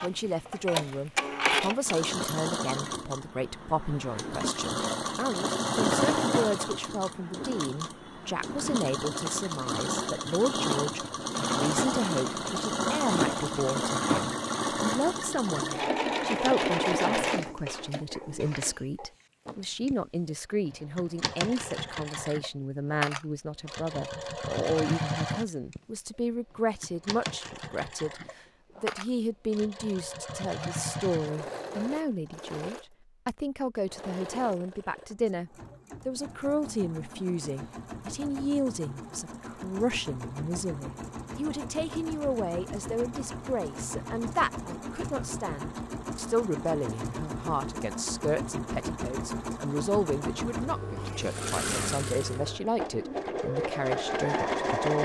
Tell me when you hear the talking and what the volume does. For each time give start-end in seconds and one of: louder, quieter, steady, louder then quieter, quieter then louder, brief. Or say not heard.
0.0-55.0 steady.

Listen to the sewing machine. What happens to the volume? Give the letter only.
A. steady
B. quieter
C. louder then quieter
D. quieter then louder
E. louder
D.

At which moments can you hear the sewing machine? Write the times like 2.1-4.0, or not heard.
0.0-55.0.